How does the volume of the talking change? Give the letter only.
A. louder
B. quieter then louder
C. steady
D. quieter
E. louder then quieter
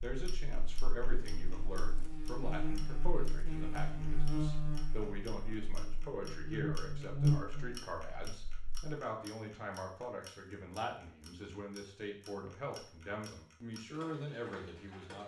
C.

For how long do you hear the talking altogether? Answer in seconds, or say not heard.
15 s.